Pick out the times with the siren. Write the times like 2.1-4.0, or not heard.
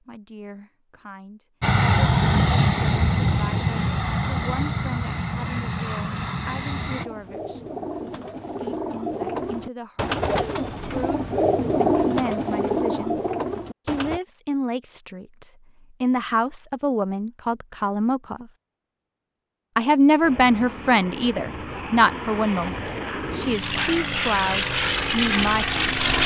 not heard.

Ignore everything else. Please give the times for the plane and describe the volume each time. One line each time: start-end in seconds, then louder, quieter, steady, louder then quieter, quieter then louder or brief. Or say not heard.
1.6-7.0 quieter
20.2-26.2 louder.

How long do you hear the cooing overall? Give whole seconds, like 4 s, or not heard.
7 s.